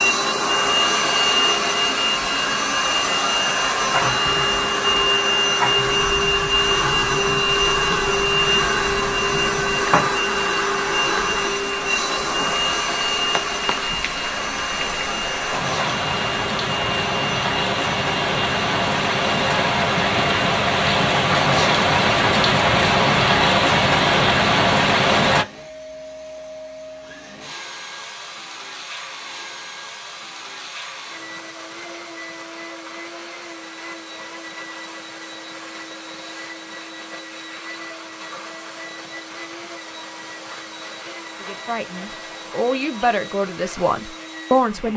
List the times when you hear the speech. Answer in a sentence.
You can hear the speech from 41.4 to 44.9 s.